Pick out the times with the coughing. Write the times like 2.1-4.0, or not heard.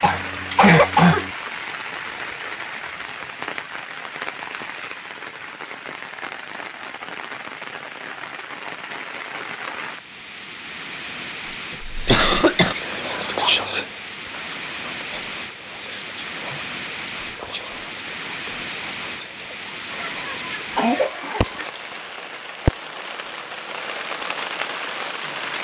0.0-1.3, 12.1-12.8, 20.0-21.6.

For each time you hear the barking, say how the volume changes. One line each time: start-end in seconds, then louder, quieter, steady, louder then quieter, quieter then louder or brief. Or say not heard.
not heard.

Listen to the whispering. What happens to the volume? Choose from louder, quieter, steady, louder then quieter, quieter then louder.
quieter.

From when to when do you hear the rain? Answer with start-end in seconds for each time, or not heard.
0.0-25.5.